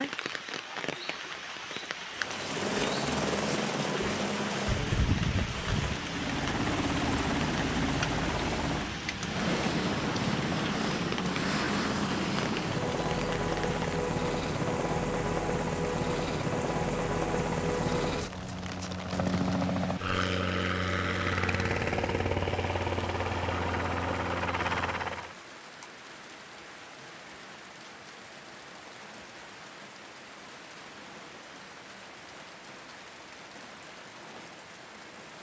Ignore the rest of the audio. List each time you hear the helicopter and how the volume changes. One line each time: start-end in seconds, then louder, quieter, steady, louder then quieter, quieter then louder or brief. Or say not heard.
2.1-25.4 steady.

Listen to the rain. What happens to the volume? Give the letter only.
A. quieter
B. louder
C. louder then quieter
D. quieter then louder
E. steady
A.